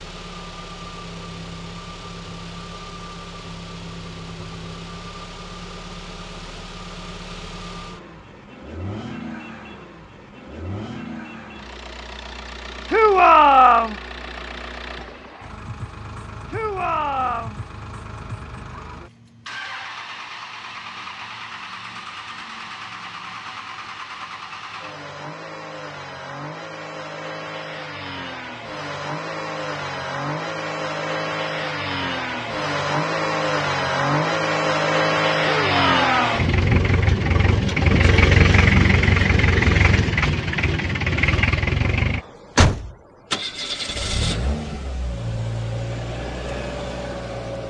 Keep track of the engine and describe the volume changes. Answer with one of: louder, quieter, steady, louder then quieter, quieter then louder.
louder.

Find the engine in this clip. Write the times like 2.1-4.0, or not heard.
0.0-47.6.